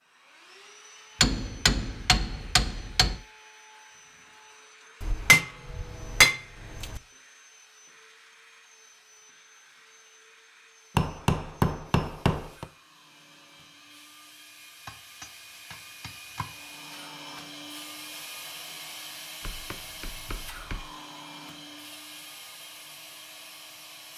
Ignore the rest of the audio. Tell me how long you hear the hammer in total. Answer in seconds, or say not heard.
9 s.